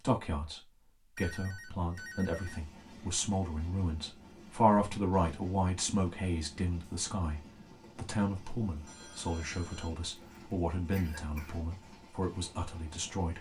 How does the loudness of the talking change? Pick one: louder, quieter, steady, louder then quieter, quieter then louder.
louder then quieter.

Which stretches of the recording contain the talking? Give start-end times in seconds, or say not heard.
0.0-13.3.